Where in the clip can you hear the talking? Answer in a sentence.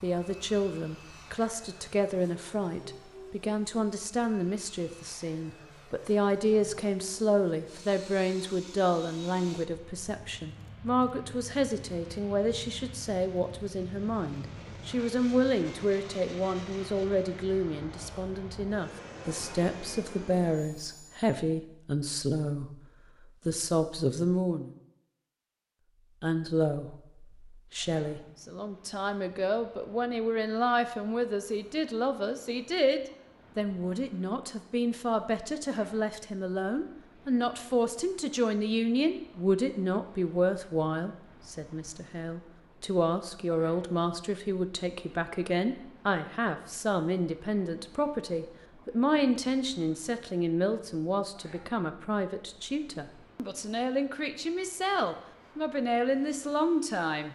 The talking can be heard from 0.0 to 24.7 s and from 26.2 to 57.3 s.